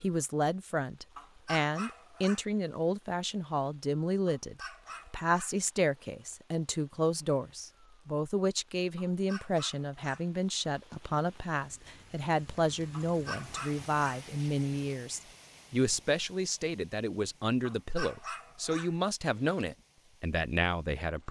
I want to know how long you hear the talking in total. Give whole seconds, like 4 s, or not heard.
21 s.